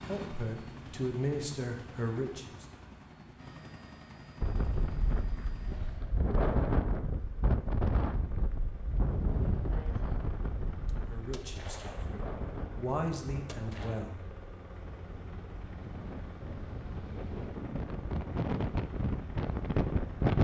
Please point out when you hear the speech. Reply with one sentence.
You can hear the speech from 0.0 to 2.6 s and from 11.1 to 14.2 s.